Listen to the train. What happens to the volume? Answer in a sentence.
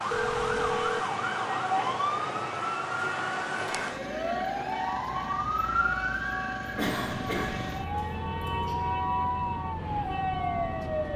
The volume of the train stays about the same.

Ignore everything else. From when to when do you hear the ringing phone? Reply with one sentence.
The ringing phone can be heard from 0.1 to 1.1 s and from 7.9 to 8.9 s.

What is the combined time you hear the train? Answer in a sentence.
The train can be heard for 11 seconds in total.